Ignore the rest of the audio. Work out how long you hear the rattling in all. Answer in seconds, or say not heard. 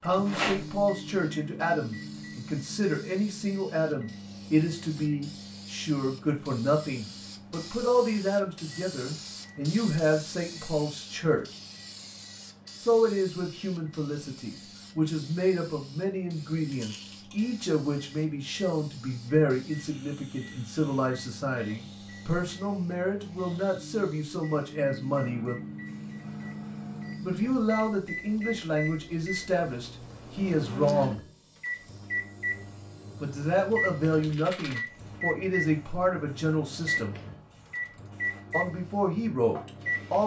2 s.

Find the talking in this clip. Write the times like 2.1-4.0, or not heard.
0.0-11.4, 12.8-25.6, 27.2-31.2, 33.2-37.1, 38.5-40.2.